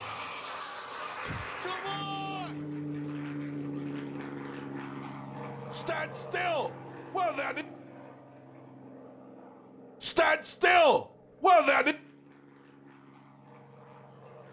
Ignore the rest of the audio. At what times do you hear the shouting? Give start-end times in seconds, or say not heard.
1.2-2.5, 5.7-7.7, 10.0-11.9.